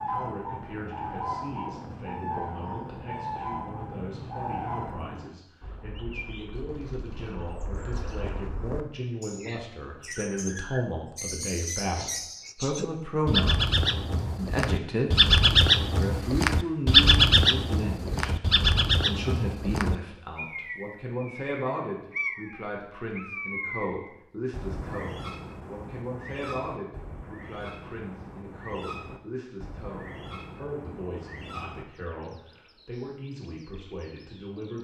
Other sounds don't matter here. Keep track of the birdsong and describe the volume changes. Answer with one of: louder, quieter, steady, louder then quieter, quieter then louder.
louder then quieter.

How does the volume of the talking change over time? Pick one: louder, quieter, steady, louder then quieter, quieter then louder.
louder then quieter.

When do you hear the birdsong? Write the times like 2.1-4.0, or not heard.
0.0-34.7.